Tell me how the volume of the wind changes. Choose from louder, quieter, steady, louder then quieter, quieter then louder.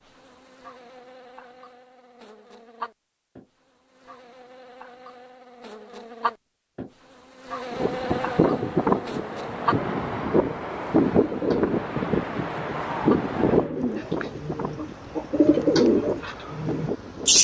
quieter.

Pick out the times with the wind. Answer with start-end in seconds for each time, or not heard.
7.7-17.3.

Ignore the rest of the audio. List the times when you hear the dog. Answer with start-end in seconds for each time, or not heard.
not heard.